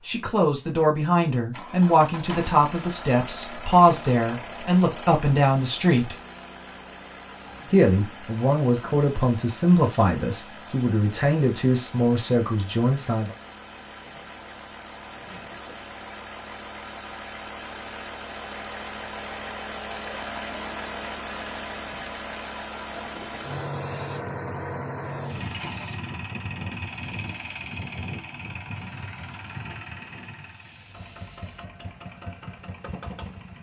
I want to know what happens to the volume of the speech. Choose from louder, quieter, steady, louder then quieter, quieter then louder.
steady.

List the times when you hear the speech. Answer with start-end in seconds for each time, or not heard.
0.1-6.2, 7.7-13.3.